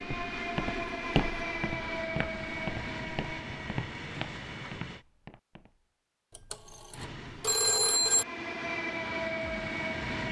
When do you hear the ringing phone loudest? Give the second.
8 s.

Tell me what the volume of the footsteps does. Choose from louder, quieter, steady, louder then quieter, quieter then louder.
quieter.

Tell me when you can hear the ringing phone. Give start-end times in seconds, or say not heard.
6.3-8.2.